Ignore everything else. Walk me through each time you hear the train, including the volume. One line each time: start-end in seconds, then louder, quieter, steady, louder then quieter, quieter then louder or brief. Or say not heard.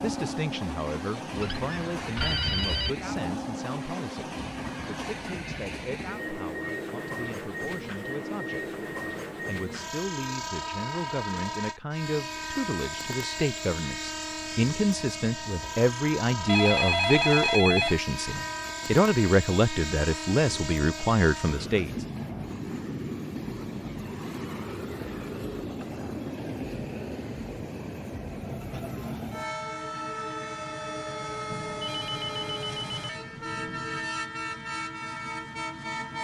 0.0-36.1 steady.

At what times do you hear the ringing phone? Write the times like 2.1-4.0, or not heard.
1.4-2.9, 16.4-18.9, 31.5-34.1.